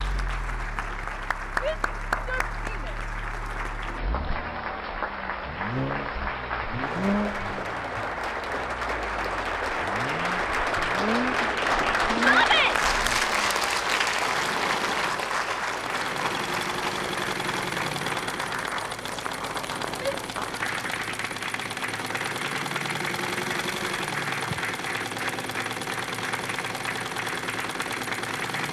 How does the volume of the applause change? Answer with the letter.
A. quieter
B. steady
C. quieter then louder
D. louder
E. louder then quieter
E.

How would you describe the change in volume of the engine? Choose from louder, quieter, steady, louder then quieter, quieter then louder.
louder.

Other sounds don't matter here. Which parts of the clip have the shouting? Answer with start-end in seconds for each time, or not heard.
1.6-3.0, 12.2-12.8, 19.9-20.6.